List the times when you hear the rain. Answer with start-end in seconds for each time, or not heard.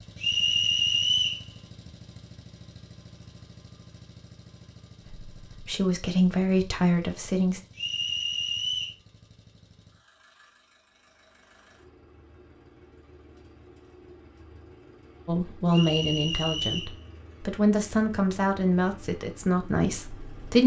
not heard.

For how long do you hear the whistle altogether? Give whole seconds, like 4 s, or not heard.
4 s.